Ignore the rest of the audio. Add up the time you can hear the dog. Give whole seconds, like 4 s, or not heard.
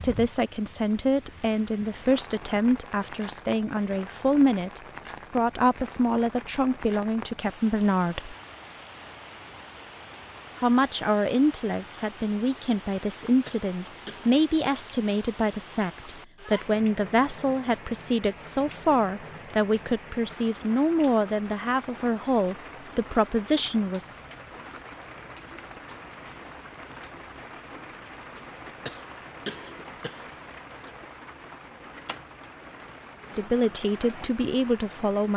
not heard.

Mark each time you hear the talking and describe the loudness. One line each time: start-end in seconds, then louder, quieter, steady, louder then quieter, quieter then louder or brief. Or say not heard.
0.0-8.3 steady
10.6-24.2 steady
33.4-35.3 brief.